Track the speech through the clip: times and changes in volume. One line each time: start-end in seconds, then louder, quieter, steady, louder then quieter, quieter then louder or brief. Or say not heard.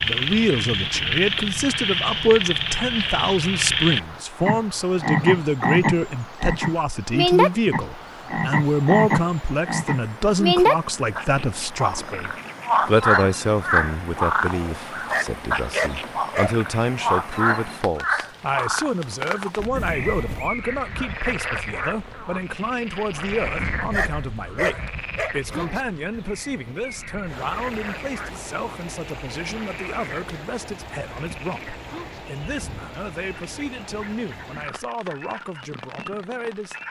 0.0-36.8 quieter.